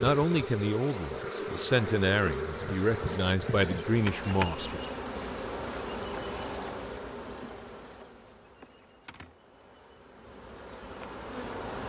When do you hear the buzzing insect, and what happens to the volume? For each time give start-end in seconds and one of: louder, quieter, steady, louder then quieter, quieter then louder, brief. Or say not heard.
0.0-11.8 quieter.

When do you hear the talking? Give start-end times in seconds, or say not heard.
0.0-4.8.